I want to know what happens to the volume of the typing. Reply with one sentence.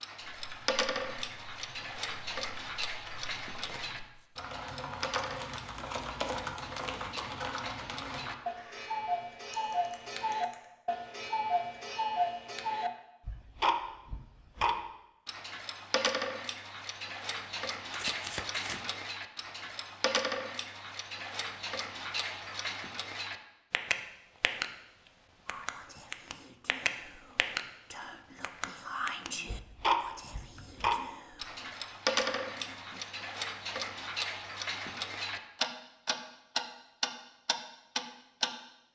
The loudness of the typing goes up, then down.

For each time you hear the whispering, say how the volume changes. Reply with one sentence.
The whispering can be heard from 25.4 to 33.1 s, getting louder then quieter.